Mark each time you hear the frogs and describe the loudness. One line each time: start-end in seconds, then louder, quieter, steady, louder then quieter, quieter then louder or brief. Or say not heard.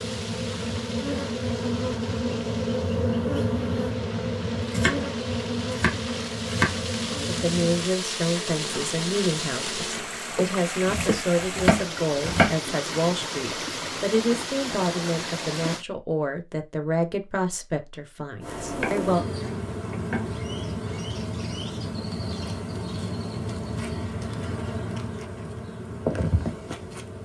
not heard.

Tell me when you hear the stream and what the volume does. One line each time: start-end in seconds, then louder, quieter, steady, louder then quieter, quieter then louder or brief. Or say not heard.
0.0-15.8 louder.